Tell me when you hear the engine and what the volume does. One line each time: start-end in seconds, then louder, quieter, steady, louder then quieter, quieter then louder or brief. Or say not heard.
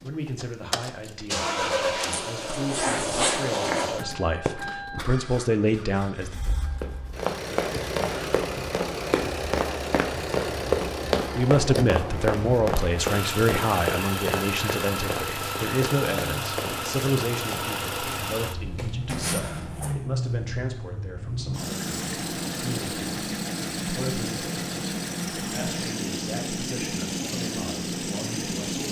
0.0-28.8 steady.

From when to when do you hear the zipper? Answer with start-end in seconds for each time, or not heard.
2.0-3.9, 19.1-19.9.